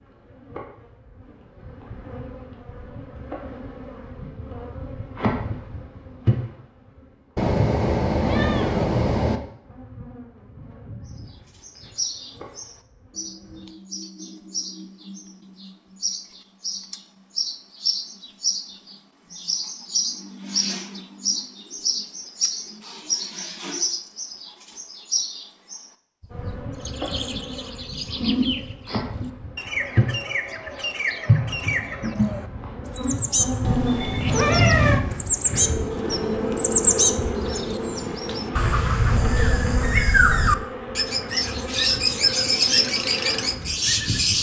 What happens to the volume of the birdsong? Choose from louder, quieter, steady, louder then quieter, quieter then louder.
louder.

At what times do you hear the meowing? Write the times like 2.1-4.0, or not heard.
7.3-9.4, 33.6-35.0.